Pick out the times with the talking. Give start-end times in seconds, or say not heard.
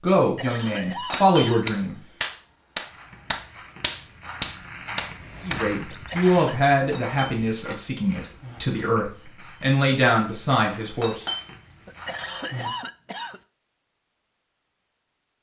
0.0-1.9, 5.5-11.2.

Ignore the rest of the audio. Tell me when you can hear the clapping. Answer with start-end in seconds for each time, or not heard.
1.1-6.3.